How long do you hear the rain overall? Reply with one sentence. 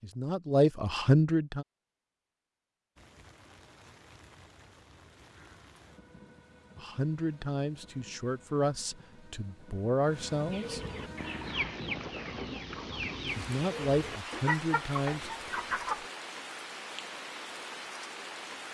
You can hear the rain for 16 seconds altogether.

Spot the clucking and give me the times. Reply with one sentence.
You can hear the clucking from 10.5 to 16.1 s.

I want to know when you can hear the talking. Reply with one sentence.
You can hear the talking from 0.0 to 1.6 s, from 6.8 to 10.8 s and from 13.3 to 15.3 s.